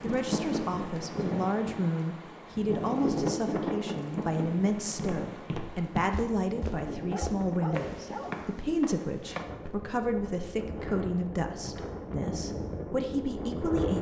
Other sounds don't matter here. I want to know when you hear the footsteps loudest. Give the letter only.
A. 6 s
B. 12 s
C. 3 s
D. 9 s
A.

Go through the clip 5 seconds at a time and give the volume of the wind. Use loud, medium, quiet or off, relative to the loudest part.
loud, medium, loud.